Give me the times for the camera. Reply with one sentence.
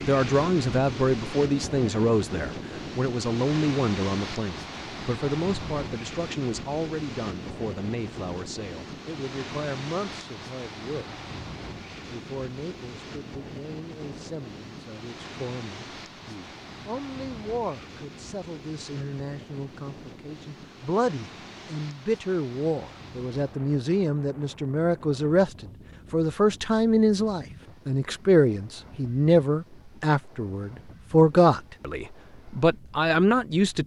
You can't hear the camera here.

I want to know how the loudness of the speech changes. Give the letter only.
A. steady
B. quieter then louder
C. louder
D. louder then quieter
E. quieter
B.